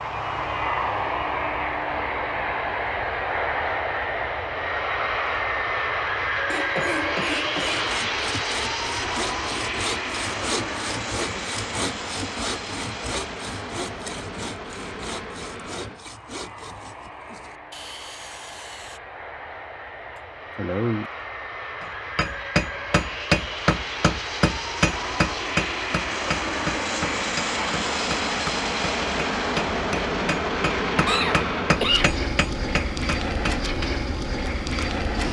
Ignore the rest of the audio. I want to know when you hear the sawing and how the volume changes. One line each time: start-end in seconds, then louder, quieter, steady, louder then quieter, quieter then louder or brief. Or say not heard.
7.7-19.0 quieter.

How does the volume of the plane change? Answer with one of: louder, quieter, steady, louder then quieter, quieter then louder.
quieter then louder.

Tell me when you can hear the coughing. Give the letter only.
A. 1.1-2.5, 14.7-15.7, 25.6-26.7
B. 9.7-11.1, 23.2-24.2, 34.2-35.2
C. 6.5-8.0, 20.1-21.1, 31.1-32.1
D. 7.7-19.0
C.